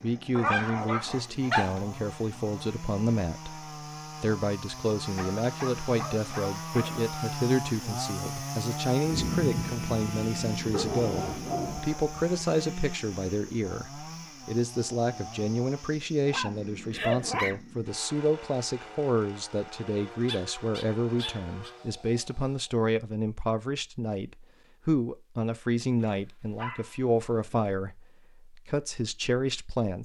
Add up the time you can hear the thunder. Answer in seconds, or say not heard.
3 s.